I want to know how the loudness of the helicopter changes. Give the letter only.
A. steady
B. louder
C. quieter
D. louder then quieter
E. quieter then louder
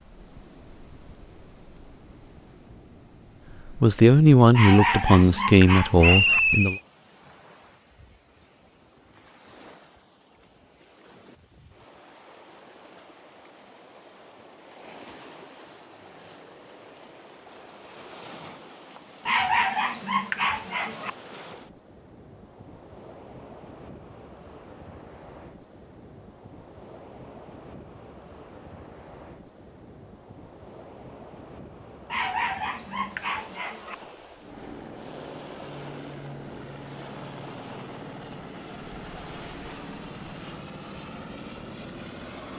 A.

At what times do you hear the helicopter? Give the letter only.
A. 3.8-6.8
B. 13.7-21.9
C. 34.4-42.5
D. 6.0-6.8
C.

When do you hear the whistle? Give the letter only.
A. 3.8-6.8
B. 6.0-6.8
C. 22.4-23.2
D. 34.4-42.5
B.